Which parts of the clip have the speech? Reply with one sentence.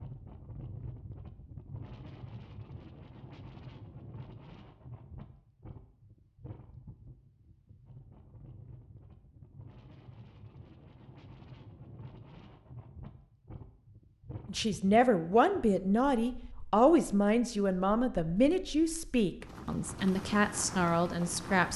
The speech can be heard from 14.4 to 21.7 s.